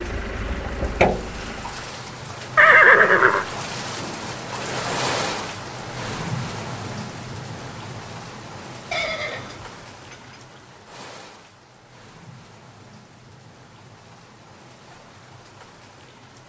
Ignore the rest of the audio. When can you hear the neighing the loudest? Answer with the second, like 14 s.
3 s.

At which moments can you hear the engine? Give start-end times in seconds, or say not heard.
0.0-1.9.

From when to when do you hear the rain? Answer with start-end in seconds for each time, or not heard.
0.0-16.4.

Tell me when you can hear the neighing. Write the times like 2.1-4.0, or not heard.
2.5-3.5, 8.9-10.4.